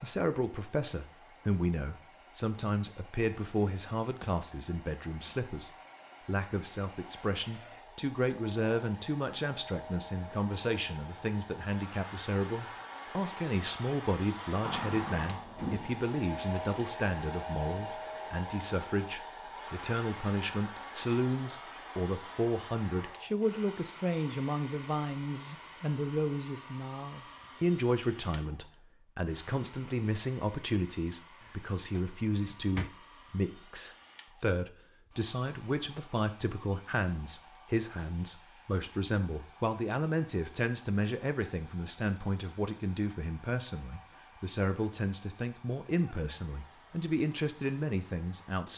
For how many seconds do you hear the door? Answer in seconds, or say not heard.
3 s.